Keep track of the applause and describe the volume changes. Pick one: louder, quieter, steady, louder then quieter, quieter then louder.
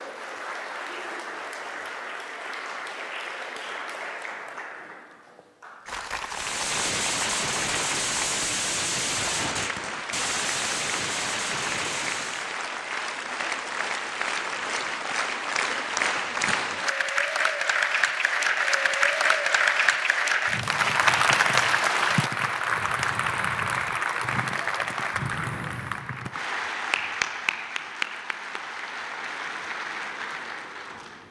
louder then quieter.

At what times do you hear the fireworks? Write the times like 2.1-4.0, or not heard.
6.2-12.6.